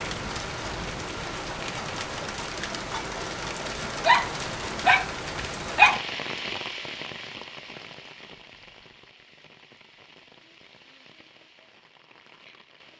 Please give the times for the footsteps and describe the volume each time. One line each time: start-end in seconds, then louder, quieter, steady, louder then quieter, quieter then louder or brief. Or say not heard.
not heard.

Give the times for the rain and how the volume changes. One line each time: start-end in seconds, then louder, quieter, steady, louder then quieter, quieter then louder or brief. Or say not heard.
0.0-12.9 quieter.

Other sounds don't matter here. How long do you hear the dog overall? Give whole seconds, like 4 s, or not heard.
2 s.